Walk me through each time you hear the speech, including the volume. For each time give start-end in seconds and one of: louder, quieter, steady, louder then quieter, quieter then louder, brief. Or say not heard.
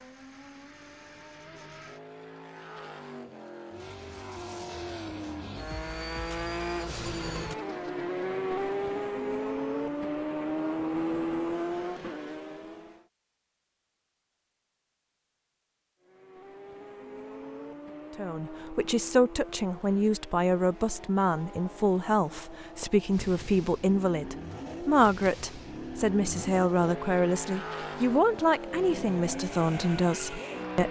18.1-30.8 steady.